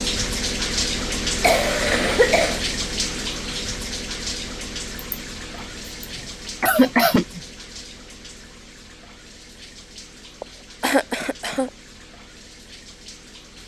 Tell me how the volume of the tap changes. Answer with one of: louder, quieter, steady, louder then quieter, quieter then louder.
quieter.